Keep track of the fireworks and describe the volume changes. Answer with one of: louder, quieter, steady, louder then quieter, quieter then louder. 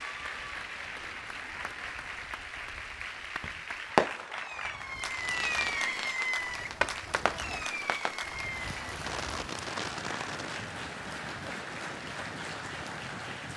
quieter.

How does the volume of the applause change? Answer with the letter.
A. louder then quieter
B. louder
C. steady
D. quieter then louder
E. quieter
C.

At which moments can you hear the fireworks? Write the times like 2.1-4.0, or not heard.
3.4-10.8.